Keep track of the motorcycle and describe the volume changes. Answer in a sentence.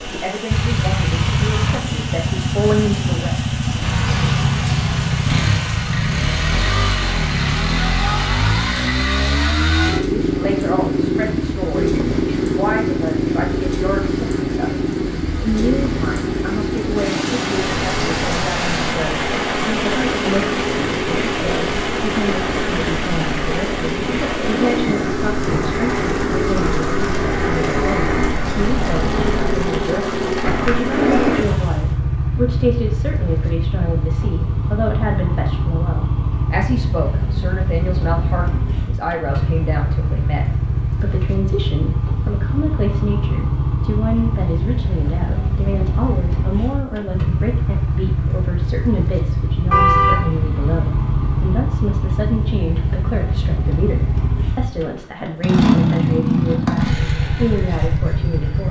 The volume of the motorcycle stays about the same.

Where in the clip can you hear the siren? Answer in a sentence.
The siren can't be heard in this clip.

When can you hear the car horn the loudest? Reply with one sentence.
The loudest moment of the car horn is at 50 seconds.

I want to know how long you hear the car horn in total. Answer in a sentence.
The car horn can be heard for 2 seconds in total.